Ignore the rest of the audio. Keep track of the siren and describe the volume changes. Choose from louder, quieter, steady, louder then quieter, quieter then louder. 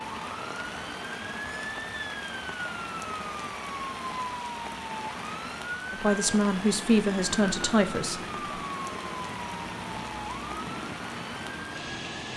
steady.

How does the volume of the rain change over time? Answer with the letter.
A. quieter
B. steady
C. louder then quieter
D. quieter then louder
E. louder
B.